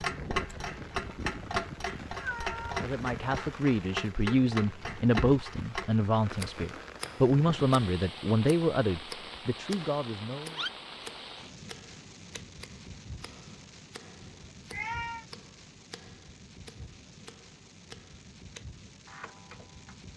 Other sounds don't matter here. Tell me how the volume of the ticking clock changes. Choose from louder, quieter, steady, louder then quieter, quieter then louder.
quieter.